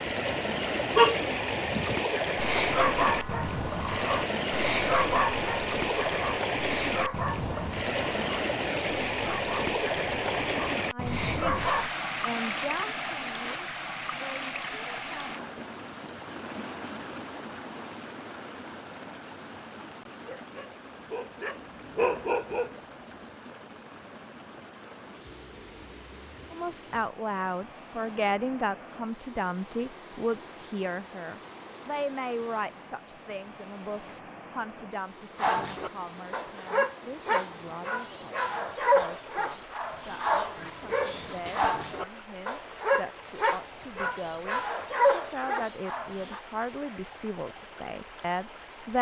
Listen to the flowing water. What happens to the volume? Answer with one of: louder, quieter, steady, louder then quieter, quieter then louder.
quieter.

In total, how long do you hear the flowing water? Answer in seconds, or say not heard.
49 s.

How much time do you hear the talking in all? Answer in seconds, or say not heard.
27 s.